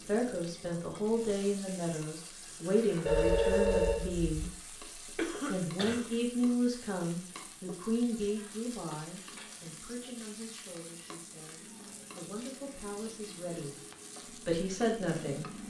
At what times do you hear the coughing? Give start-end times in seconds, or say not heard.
5.2-6.0.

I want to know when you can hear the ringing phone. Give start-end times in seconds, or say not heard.
3.0-4.3.